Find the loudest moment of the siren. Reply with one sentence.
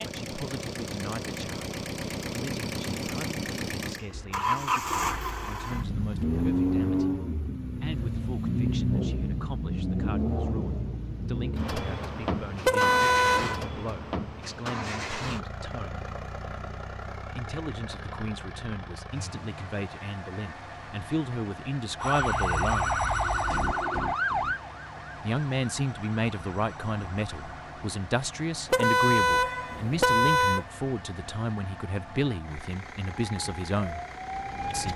The volume of the siren peaks at 23 seconds.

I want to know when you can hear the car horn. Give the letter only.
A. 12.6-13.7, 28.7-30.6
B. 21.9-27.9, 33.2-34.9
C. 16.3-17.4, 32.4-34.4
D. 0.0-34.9
A.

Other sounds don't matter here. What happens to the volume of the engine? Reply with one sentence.
The loudness of the engine goes down.